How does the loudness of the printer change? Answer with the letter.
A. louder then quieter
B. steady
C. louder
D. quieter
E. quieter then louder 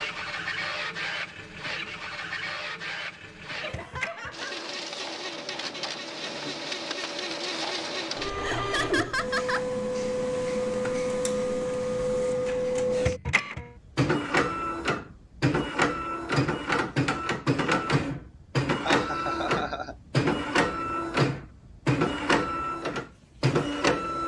C.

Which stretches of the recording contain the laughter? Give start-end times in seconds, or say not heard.
3.5-4.5, 8.4-9.7, 18.9-19.9.